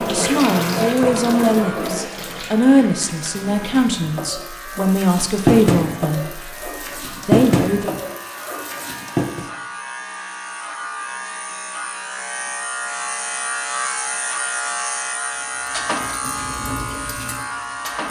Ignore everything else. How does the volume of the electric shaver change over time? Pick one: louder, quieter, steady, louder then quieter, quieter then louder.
louder.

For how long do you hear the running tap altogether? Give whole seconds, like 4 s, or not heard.
12 s.